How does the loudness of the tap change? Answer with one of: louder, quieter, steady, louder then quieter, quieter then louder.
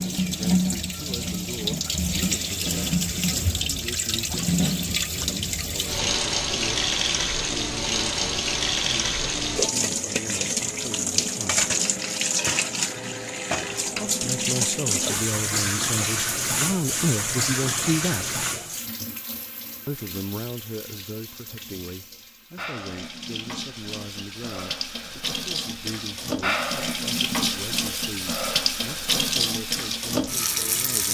quieter then louder.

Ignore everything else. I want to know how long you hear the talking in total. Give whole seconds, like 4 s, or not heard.
27 s.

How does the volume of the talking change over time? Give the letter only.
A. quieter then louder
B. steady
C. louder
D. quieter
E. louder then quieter
E.